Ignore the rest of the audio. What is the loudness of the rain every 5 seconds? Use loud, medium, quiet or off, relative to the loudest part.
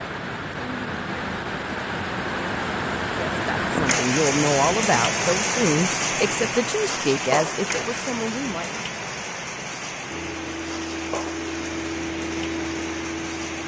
loud, loud, medium.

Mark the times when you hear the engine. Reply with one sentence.
The engine can be heard from 10.1 to 13.6 s.